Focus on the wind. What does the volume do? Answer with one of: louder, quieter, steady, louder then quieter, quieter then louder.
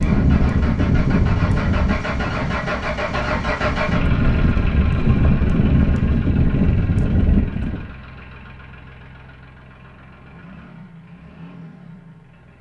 quieter then louder.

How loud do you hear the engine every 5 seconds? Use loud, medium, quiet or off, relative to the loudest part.
loud, medium, quiet.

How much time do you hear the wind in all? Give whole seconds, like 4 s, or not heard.
8 s.